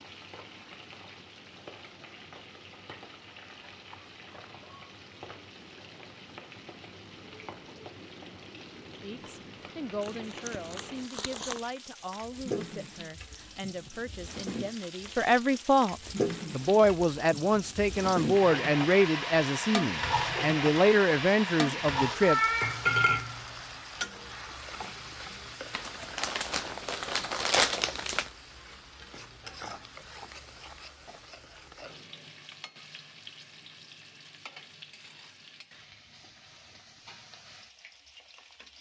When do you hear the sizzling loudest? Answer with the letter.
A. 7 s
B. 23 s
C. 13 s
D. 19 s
B.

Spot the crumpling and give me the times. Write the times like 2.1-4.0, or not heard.
10.0-11.6, 25.7-28.3.